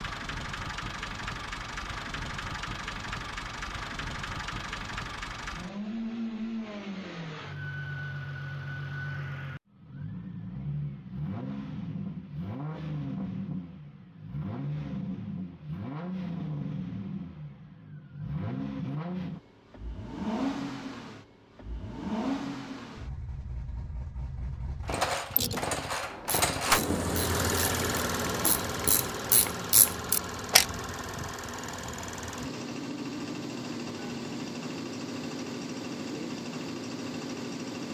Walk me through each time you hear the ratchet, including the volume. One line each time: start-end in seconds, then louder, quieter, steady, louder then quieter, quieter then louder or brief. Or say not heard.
25.3-30.6 louder.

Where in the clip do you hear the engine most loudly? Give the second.
27 s.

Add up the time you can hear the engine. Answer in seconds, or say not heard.
38 s.